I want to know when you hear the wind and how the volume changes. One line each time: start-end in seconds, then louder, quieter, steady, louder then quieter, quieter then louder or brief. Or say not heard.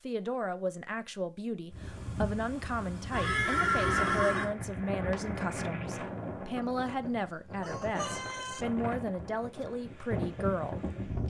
1.7-11.2 steady.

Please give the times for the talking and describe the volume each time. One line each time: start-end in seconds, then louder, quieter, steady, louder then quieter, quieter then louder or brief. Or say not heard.
0.0-10.8 steady.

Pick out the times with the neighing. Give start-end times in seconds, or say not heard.
3.1-4.5.